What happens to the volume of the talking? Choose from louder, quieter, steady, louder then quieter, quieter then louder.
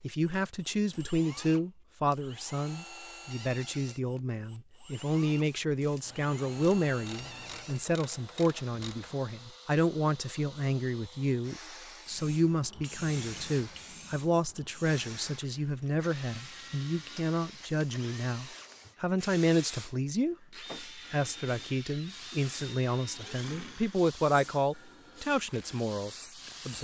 steady.